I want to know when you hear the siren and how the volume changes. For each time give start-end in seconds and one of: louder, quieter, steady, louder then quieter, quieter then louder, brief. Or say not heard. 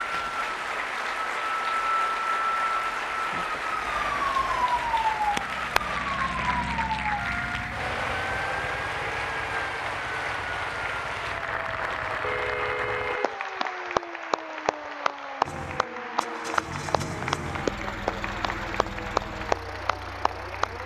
0.0-20.8 quieter.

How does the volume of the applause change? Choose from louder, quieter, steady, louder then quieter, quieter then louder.
steady.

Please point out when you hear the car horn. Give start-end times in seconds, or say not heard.
12.2-13.4.